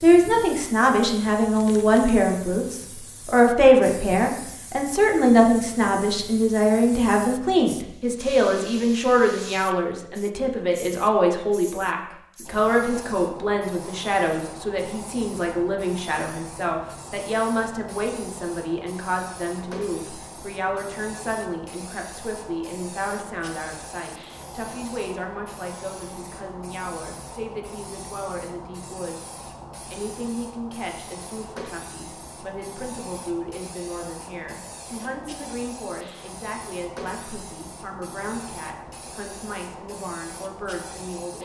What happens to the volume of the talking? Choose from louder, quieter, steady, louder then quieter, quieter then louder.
quieter.